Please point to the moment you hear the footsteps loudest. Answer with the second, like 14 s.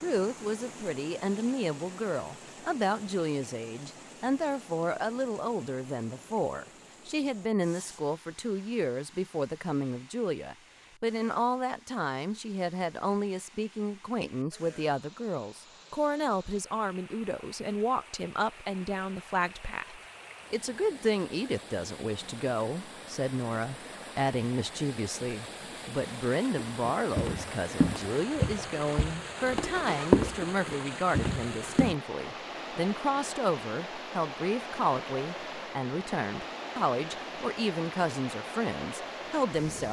30 s.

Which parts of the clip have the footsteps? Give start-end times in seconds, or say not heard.
26.6-31.9.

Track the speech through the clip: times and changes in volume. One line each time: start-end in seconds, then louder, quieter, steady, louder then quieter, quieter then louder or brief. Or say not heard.
0.0-39.8 steady.